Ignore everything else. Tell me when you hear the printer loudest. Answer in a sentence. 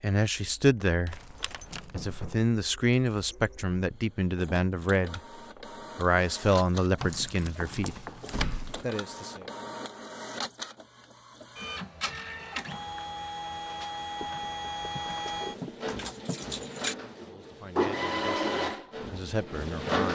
The loudest moment of the printer is at 18 seconds.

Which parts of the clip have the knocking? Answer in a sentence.
The knocking can be heard from 1.7 to 2.5 s, from 7.6 to 8.2 s and from 14.2 to 15.9 s.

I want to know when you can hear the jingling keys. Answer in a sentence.
The jingling keys can be heard from 1.1 to 1.9 s, from 7.0 to 8.8 s and from 14.9 to 16.9 s.